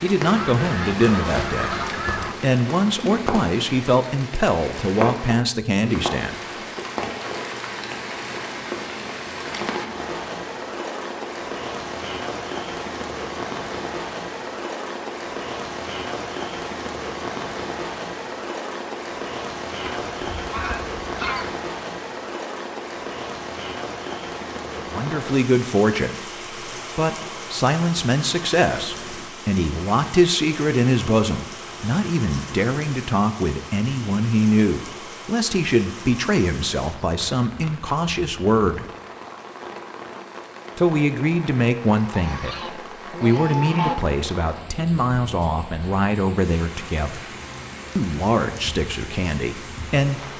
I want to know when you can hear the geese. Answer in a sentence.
The geese can be heard from 0.3 to 2.4 s, from 19.9 to 21.6 s and from 42.0 to 44.0 s.